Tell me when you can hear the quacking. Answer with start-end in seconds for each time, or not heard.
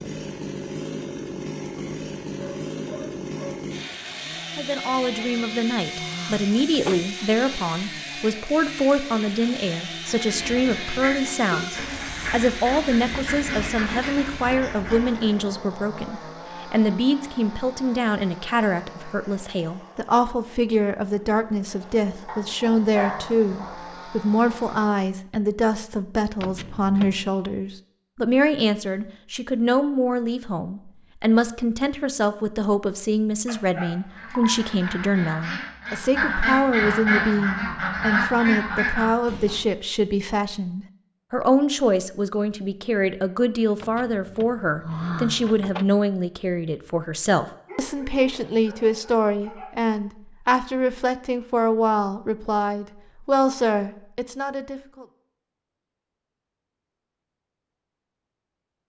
10.2-15.5, 34.0-39.6.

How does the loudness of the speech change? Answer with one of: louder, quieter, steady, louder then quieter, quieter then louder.
steady.